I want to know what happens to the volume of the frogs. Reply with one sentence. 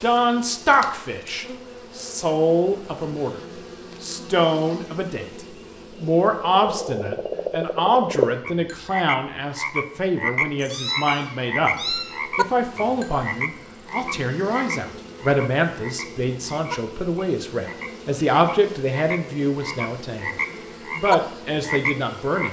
The loudness of the frogs goes down, then up.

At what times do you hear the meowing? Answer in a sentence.
The meowing can be heard from 10.6 to 12.2 s.